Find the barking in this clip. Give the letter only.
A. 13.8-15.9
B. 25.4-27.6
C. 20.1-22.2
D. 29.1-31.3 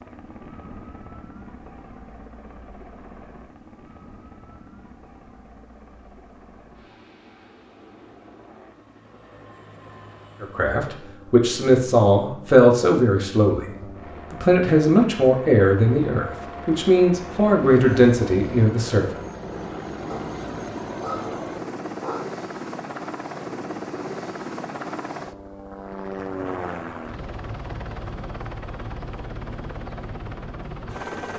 C.